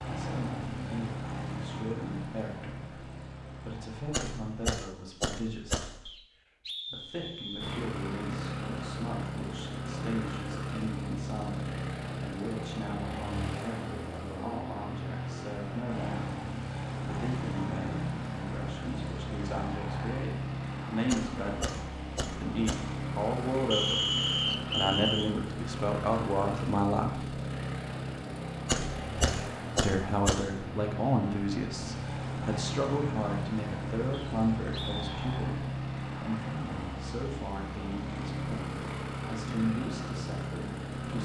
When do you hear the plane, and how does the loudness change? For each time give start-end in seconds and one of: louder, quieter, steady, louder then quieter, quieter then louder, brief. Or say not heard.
0.0-4.8 quieter
7.6-41.2 steady.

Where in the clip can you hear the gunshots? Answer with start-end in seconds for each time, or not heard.
4.1-6.1, 21.1-23.1, 28.6-30.6.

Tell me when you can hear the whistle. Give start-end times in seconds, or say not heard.
6.0-7.8, 23.7-25.3, 34.1-35.5.